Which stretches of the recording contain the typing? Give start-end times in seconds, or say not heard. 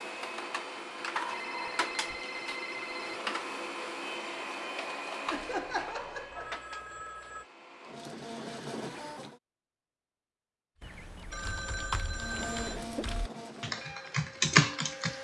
10.8-15.1.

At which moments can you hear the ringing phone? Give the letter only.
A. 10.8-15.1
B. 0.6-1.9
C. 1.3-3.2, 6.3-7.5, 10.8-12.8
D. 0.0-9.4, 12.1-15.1
C.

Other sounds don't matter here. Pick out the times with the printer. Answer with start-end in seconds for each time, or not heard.
0.0-9.4, 12.1-15.1.